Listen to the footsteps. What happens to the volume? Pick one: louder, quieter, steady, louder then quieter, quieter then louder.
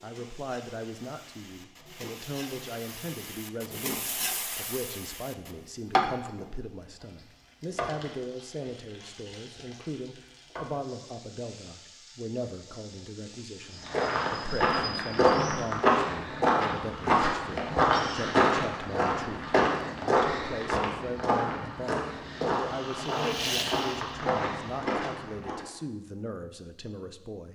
quieter.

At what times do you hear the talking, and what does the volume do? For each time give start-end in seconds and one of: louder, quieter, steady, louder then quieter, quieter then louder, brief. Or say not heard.
0.0-27.5 steady.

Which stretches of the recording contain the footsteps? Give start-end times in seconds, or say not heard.
13.8-25.6.